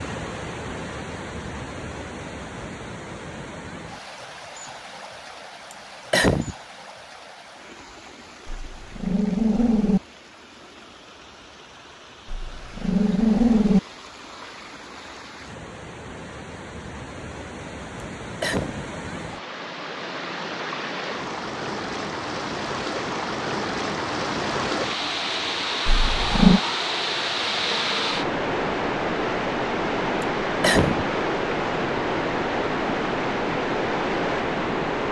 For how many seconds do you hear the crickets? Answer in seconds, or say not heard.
not heard.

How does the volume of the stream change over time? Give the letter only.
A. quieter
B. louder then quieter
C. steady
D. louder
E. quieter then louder
E.